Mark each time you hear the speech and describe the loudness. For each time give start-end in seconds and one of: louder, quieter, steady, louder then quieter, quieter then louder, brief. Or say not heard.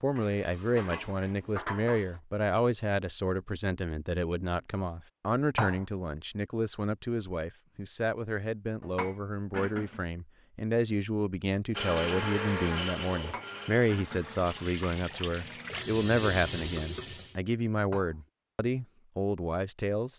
0.0-20.1 steady.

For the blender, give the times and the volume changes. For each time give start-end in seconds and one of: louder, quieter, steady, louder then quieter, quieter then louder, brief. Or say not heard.
11.7-15.8 quieter.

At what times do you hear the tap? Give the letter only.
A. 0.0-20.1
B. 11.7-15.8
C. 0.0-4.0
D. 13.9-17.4
D.